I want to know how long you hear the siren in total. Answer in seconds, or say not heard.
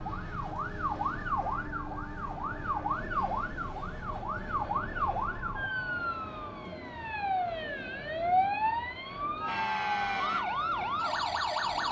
12 s.